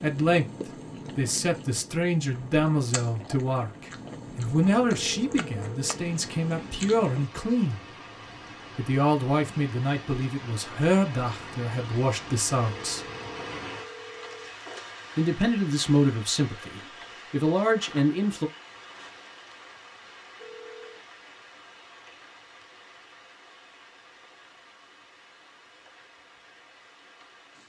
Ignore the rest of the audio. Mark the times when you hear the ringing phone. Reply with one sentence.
You can hear the ringing phone from 5.0 to 6.0 s, from 12.8 to 14.6 s and from 20.4 to 21.1 s.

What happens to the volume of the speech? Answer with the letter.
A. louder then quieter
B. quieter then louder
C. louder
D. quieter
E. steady
E.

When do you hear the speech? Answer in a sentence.
The speech can be heard from 0.0 to 7.8 s, from 8.8 to 13.1 s and from 15.2 to 18.5 s.